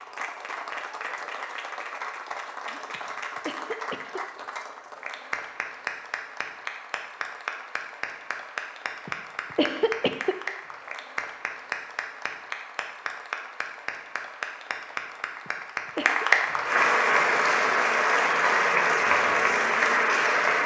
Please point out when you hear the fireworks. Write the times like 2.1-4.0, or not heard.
not heard.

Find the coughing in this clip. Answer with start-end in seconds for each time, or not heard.
2.9-4.2, 9.1-10.3, 15.4-16.2.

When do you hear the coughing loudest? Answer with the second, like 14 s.
10 s.